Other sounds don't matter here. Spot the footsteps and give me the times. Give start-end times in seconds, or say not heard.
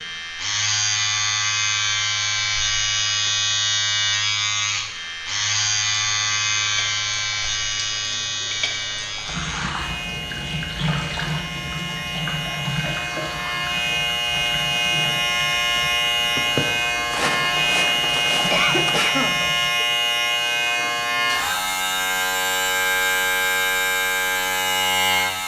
16.4-19.1.